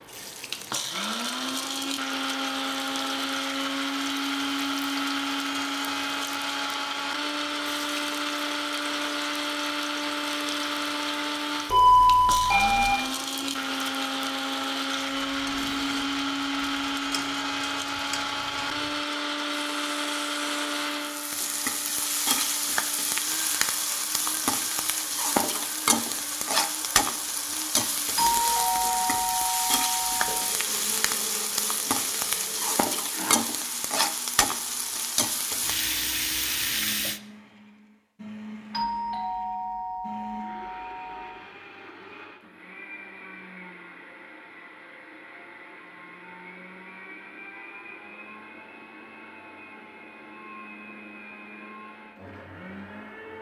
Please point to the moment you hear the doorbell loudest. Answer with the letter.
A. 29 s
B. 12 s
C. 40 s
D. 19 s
B.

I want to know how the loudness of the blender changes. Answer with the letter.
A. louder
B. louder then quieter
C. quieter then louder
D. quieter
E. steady
D.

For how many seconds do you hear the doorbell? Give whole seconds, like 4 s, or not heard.
6 s.